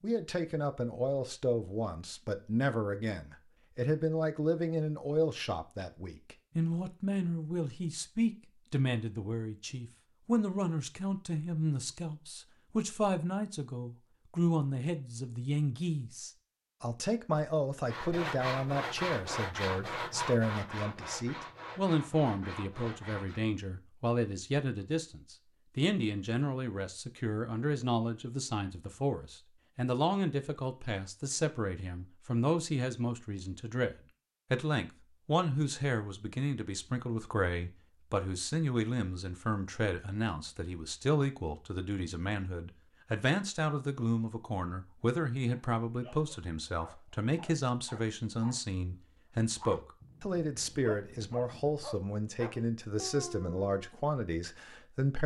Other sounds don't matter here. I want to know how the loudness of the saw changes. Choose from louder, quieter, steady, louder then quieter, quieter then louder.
quieter.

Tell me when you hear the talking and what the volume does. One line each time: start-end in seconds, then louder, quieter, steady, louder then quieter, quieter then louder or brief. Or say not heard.
0.0-55.2 steady.